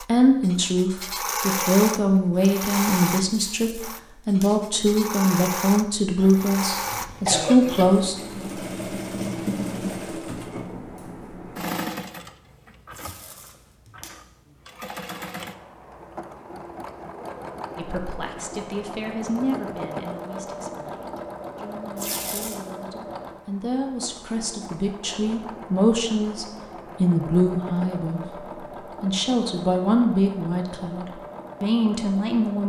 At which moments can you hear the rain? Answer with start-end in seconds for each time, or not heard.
not heard.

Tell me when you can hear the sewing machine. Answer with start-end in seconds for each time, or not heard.
0.0-32.6.